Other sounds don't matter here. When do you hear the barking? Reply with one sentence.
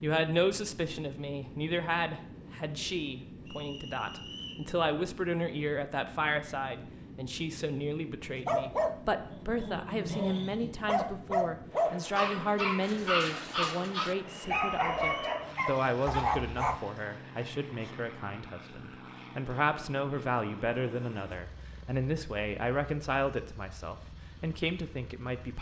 The barking can be heard from 8.4 to 16.8 s.